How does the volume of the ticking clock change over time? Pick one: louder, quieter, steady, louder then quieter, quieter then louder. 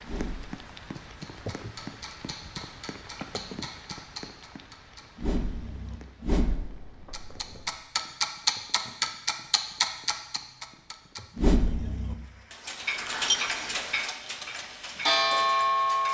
louder.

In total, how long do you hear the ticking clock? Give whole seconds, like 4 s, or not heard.
16 s.